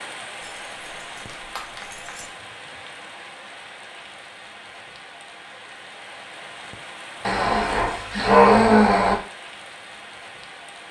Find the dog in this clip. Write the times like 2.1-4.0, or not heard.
0.4-2.2, 7.2-9.2.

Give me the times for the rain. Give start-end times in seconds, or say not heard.
0.0-10.8.